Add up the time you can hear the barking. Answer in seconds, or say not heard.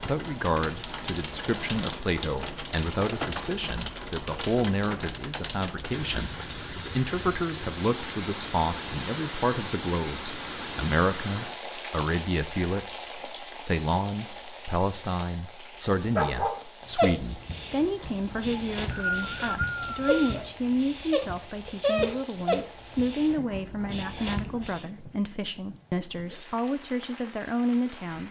9 s.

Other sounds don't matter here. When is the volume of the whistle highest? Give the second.
19 s.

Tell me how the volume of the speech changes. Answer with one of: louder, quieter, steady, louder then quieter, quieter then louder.
steady.